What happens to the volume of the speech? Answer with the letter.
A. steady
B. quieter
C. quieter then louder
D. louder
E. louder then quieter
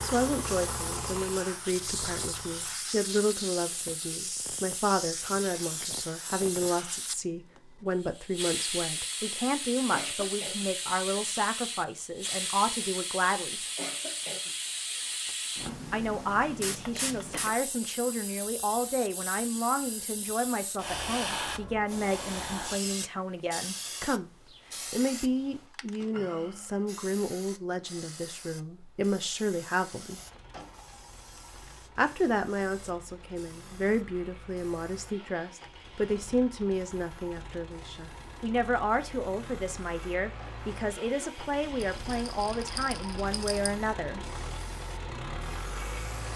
A.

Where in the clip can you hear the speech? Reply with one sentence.
The speech can be heard from 0.0 to 13.6 s, from 15.9 to 24.3 s, from 24.9 to 30.2 s and from 31.9 to 44.2 s.